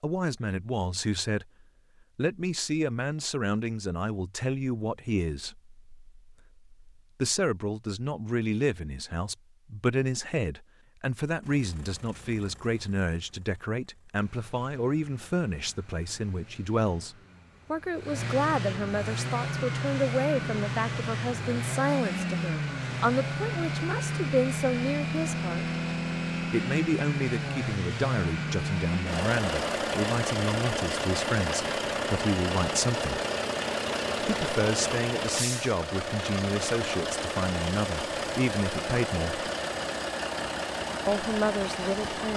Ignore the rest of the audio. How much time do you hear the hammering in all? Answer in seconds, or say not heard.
not heard.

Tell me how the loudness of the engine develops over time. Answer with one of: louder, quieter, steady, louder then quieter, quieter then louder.
louder.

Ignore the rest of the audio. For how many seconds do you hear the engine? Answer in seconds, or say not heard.
31 s.